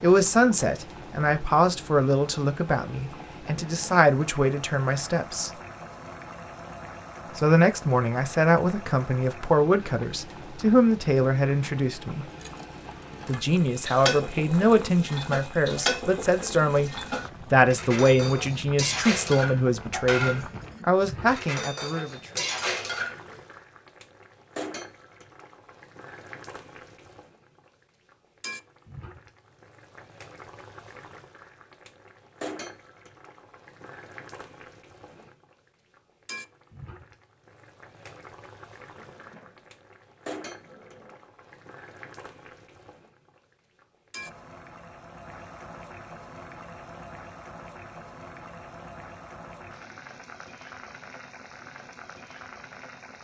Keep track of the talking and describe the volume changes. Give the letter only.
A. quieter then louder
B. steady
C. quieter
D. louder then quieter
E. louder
B.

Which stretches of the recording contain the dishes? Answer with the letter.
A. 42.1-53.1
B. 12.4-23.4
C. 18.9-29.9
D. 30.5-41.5
B.